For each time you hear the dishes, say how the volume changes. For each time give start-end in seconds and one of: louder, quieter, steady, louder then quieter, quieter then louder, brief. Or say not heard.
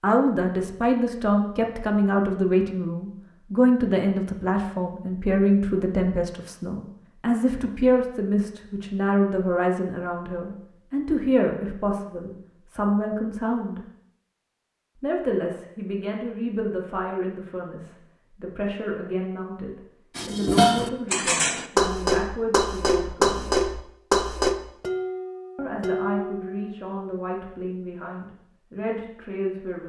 20.1-26.8 quieter.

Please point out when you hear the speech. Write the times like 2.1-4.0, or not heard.
0.0-13.8, 15.0-23.6, 25.6-29.8.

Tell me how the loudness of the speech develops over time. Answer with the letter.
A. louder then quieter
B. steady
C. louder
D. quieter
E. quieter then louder
D.